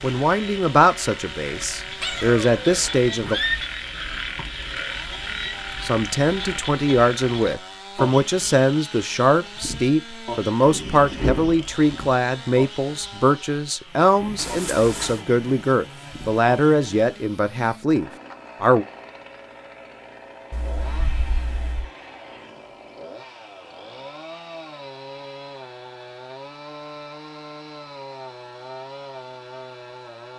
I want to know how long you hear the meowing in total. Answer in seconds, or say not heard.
4 s.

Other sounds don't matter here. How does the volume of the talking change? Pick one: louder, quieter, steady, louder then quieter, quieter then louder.
steady.